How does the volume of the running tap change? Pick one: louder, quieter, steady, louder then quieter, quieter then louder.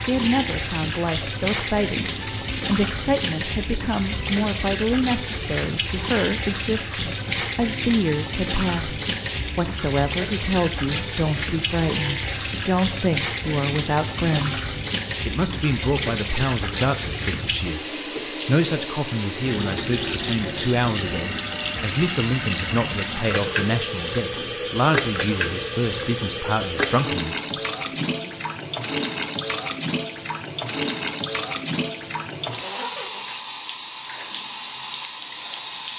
steady.